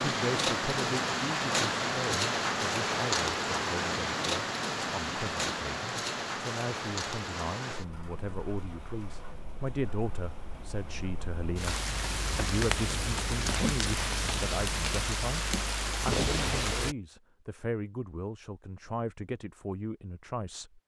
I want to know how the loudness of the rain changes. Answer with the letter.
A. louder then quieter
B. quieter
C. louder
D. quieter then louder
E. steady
D.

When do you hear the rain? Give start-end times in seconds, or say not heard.
0.0-16.9.